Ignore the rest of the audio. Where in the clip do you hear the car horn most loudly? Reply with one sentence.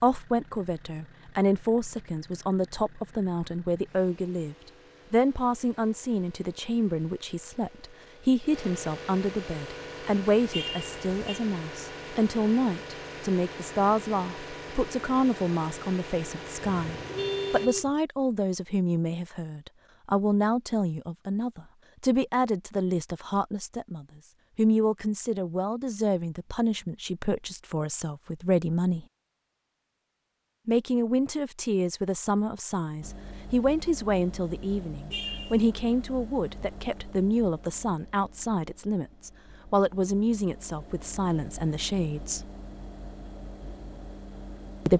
The volume of the car horn peaks at 17 seconds.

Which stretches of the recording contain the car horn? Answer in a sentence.
You can hear the car horn from 10.5 to 11.4 s, from 16.6 to 17.9 s and from 35.1 to 35.6 s.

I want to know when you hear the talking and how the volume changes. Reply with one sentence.
You can hear the talking from 0.0 to 29.1 s, at a steady volume; and from 30.6 to 42.5 s, at a steady volume.